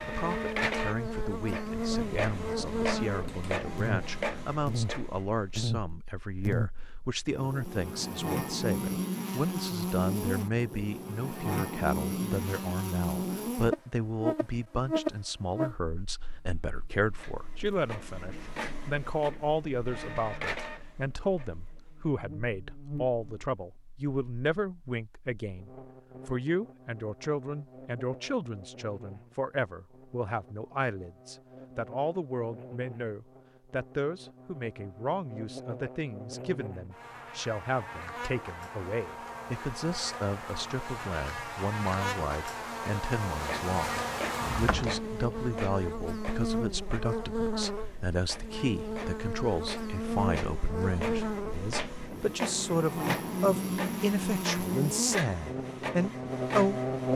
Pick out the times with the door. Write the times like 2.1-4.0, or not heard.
44.4-45.0.